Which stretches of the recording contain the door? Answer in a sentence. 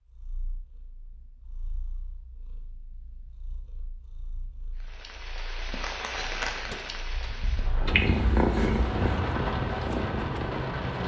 You can hear the door from 6.5 to 7.5 s.